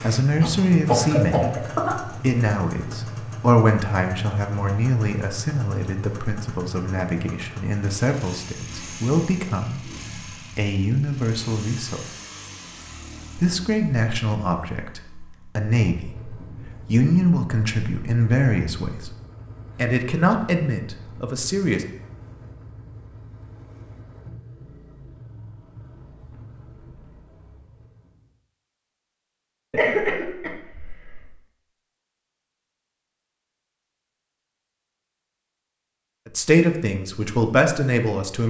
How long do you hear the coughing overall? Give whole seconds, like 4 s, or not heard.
3 s.